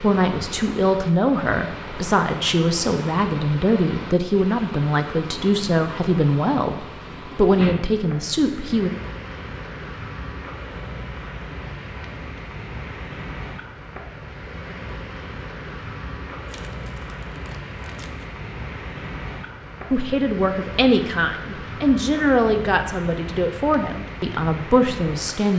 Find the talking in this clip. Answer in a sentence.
You can hear the talking from 0.0 to 8.9 s and from 19.9 to 25.5 s.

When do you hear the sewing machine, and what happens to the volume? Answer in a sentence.
You can't hear the sewing machine here.